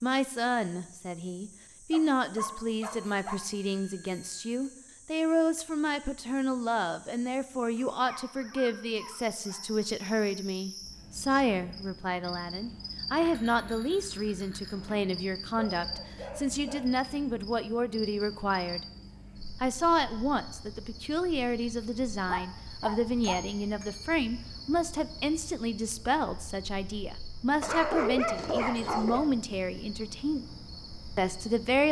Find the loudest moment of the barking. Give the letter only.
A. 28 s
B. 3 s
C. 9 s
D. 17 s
A.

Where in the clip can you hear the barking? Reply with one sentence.
The barking can be heard from 1.9 to 3.4 s, from 7.8 to 9.9 s, from 15.6 to 17.1 s, from 21.8 to 23.4 s and from 27.6 to 29.3 s.